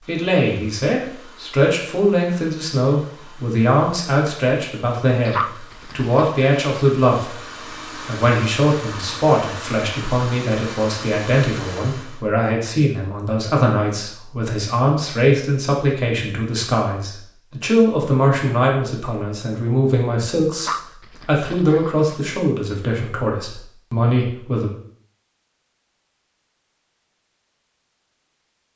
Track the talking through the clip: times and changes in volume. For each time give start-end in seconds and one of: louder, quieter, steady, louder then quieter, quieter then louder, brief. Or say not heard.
0.1-24.7 steady.